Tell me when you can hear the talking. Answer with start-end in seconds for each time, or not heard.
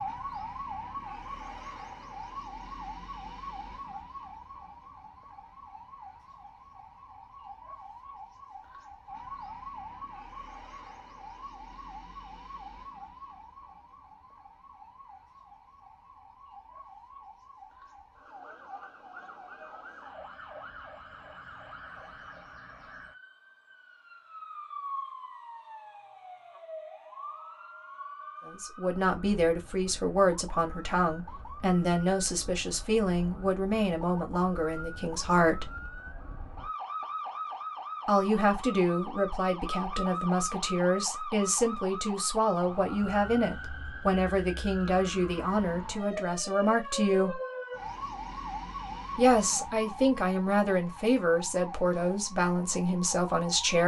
28.4-35.7, 38.0-47.4, 49.1-53.8.